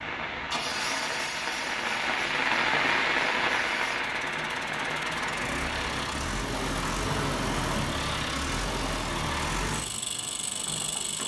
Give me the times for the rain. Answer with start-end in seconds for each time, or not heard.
0.0-8.0.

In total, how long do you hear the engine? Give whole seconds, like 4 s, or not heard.
11 s.